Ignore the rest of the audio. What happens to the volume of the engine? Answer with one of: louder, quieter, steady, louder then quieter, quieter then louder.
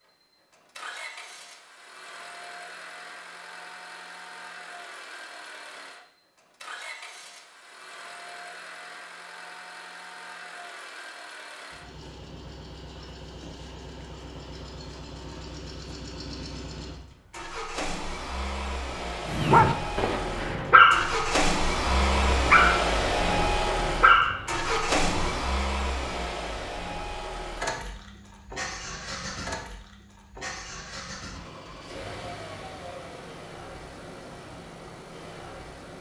louder then quieter.